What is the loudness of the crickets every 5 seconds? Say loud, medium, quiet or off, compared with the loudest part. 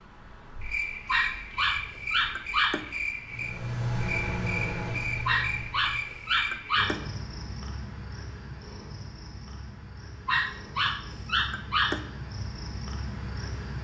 loud, loud, medium.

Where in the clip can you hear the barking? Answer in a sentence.
You can hear the barking from 1.1 to 2.9 s, from 5.2 to 7.0 s and from 10.2 to 12.1 s.